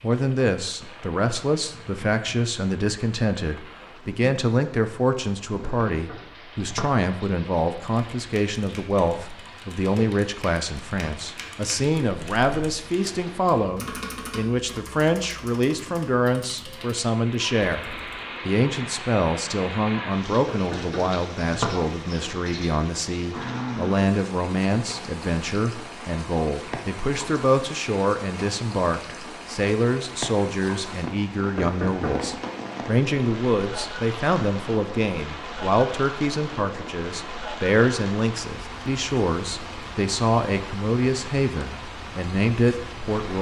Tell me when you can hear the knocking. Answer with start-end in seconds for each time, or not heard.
5.6-6.8, 20.4-21.6, 31.6-32.3.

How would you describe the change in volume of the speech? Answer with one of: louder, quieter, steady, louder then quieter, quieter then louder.
steady.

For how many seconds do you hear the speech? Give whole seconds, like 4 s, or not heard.
43 s.